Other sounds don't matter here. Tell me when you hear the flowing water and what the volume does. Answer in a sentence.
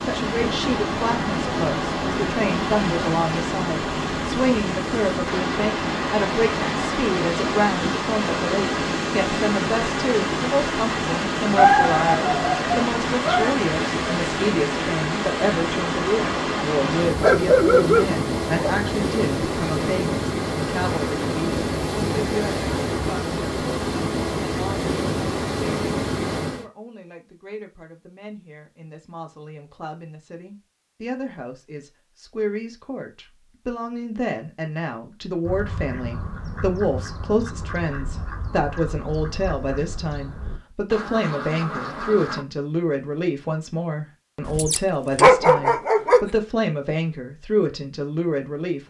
You can hear the flowing water from 0.0 to 26.6 s, at a steady volume.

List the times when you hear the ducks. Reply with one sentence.
The ducks can be heard from 35.5 to 42.5 s.